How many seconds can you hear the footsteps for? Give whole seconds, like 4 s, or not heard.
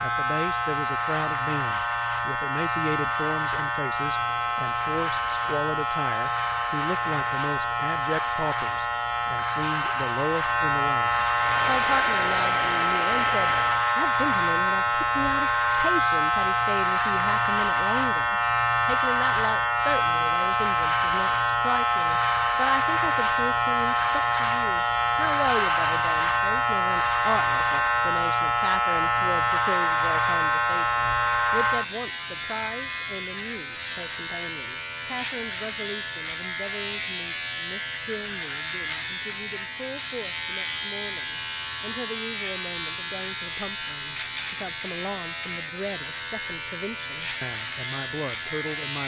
not heard.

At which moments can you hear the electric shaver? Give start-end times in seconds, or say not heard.
0.0-49.0.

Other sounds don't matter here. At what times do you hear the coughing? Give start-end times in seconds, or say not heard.
not heard.